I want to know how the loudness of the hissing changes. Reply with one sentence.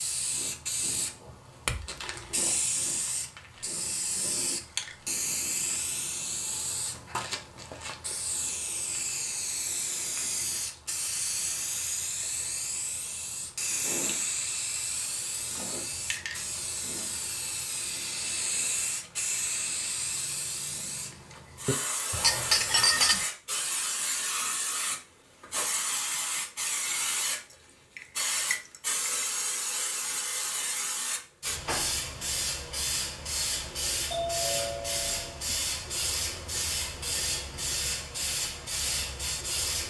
The volume of the hissing stays about the same.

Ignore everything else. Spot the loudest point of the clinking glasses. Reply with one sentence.
The loudest moment of the clinking glasses is at 23 seconds.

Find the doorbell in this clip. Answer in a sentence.
You can hear the doorbell from 34.1 to 35.5 s.